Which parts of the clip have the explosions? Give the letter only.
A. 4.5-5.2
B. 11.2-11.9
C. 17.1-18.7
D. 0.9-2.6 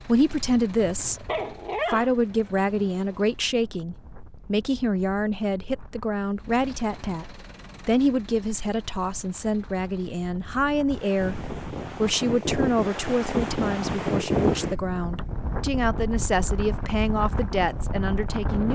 B.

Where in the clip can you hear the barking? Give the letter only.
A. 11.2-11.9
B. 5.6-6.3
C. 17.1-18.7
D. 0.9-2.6
D.